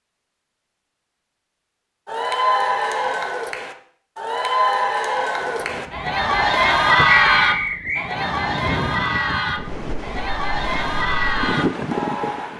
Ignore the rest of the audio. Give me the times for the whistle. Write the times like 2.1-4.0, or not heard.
7.2-8.1.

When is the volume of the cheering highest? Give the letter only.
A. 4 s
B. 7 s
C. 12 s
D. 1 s
B.